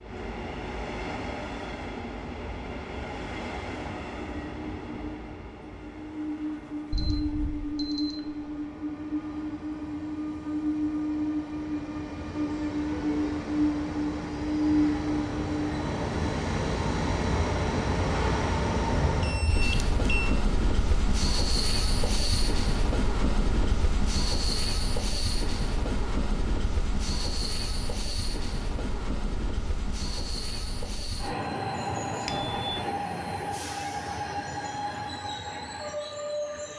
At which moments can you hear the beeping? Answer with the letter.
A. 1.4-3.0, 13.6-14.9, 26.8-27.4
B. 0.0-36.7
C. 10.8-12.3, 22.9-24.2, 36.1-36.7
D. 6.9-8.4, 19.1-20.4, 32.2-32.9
D.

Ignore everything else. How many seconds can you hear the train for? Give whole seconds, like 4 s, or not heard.
37 s.